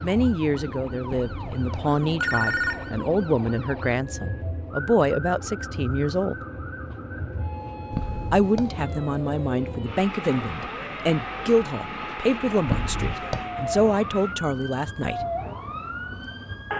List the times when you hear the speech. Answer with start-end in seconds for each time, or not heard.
0.0-6.3, 8.3-15.2.